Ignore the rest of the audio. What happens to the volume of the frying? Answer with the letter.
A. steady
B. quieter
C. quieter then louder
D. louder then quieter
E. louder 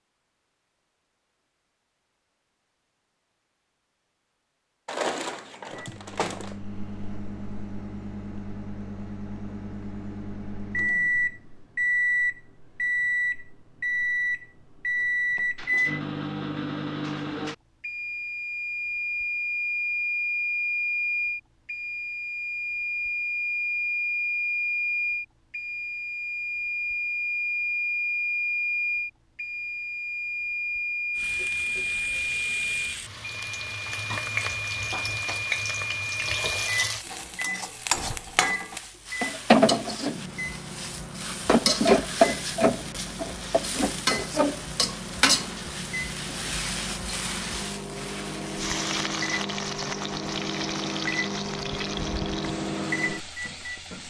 D.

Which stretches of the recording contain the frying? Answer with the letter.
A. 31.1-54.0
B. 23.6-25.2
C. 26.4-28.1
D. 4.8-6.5
A.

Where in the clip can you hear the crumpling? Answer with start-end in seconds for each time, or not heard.
4.8-6.5.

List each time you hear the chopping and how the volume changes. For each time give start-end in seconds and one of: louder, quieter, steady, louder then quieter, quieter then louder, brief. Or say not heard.
not heard.